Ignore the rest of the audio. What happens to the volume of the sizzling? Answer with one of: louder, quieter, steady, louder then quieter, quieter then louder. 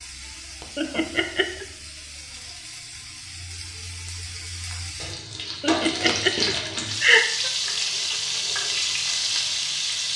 louder.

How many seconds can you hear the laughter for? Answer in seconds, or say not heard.
3 s.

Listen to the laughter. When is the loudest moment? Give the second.
7 s.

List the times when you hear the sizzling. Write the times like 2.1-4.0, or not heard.
0.0-10.1.